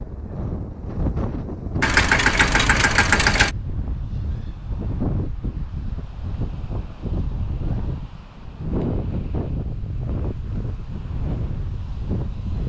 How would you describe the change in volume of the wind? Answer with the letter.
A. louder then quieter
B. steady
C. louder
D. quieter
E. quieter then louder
B.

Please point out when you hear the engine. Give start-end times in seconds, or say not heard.
1.8-3.5.